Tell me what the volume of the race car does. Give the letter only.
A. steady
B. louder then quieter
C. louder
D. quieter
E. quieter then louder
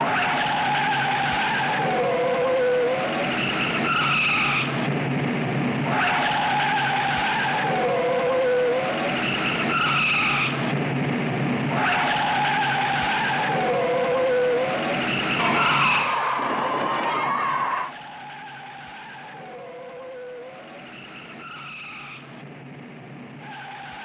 D.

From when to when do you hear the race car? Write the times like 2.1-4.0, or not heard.
0.0-23.9.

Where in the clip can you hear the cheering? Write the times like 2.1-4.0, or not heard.
15.3-17.9.